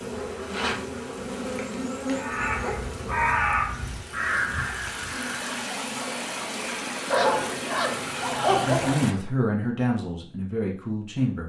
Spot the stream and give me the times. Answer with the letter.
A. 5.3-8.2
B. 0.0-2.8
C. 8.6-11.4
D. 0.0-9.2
D.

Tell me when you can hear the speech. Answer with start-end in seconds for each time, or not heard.
8.6-11.4.